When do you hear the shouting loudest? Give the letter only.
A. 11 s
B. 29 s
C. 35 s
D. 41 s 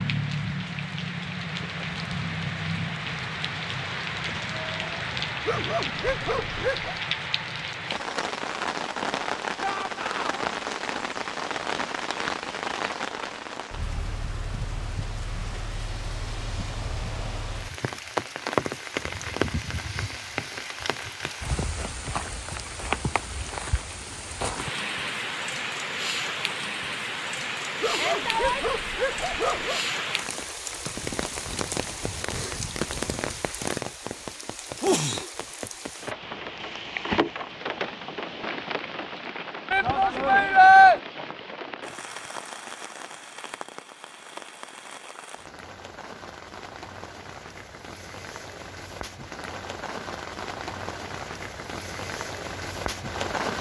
D.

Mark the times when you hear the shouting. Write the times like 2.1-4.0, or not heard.
9.6-10.5, 27.9-28.7, 39.7-41.0.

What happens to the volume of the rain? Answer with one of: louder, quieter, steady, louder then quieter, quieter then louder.
quieter.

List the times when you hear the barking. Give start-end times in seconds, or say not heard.
5.5-7.0, 27.8-29.9.